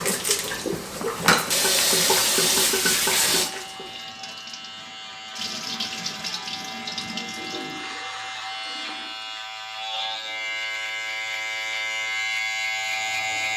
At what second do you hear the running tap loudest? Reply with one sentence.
The volume of the running tap peaks at 2 seconds.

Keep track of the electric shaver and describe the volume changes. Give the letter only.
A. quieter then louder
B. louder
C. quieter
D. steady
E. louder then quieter
B.